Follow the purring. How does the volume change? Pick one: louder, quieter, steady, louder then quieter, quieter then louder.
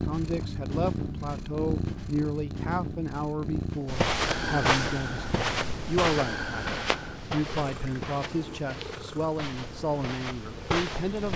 quieter.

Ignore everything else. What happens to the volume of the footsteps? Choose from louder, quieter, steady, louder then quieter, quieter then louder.
quieter then louder.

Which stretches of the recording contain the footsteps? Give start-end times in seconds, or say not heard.
3.9-11.3.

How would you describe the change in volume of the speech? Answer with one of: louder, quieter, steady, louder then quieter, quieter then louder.
steady.